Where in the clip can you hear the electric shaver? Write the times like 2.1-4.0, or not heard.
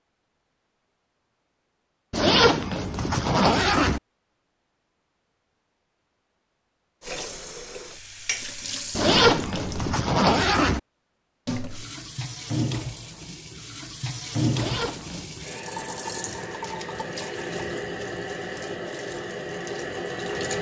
not heard.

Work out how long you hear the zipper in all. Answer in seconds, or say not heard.
5 s.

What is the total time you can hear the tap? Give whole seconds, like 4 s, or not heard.
12 s.